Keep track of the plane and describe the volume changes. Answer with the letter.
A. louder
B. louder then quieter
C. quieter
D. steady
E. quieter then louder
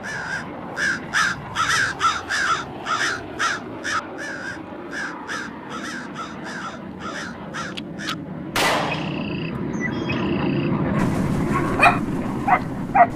A.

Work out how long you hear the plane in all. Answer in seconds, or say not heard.
13 s.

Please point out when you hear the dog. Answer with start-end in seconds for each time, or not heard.
10.9-13.1.